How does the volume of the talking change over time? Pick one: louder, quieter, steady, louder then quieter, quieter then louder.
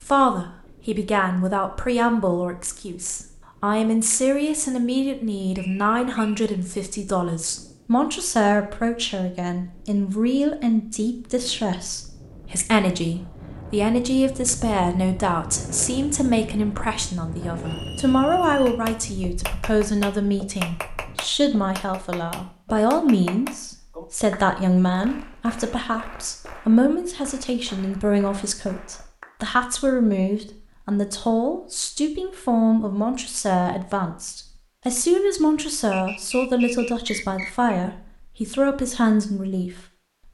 steady.